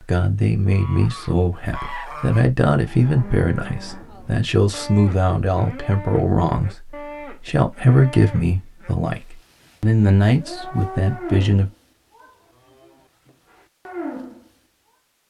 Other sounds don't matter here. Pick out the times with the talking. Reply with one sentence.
You can hear the talking from 0.1 to 11.7 s.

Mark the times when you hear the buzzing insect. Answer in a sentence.
You can't hear the buzzing insect here.